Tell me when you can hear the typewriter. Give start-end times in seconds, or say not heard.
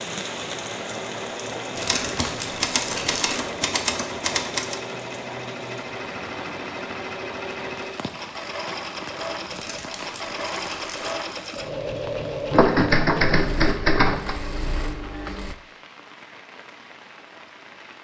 1.9-4.8, 12.5-14.3.